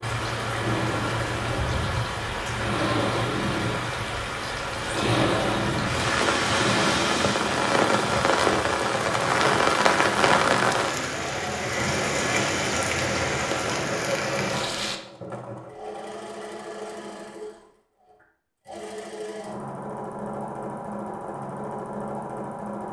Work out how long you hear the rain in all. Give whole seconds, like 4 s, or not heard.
15 s.